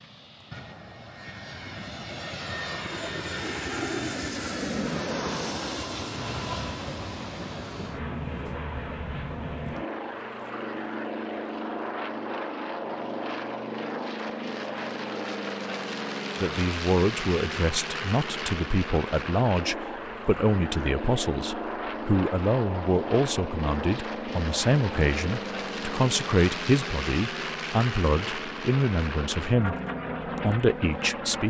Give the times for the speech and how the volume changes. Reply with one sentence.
The speech can be heard from 16.4 to 29.8 s, at a steady volume; and briefly from 30.4 to 31.4 s.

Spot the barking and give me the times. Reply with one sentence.
The barking can't be heard in this clip.